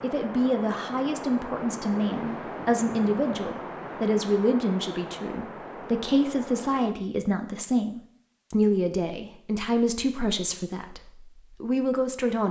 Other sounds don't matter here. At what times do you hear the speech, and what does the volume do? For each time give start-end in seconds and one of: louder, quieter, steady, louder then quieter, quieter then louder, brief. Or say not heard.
0.0-12.4 steady.